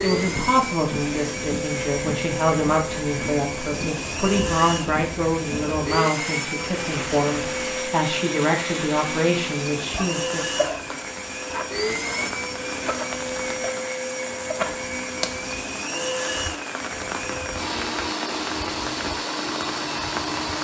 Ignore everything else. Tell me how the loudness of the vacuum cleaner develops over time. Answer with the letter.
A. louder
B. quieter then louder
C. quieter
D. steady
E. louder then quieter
D.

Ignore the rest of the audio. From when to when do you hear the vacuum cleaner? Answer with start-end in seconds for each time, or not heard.
0.0-20.5.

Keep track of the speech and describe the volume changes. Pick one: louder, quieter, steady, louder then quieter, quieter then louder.
steady.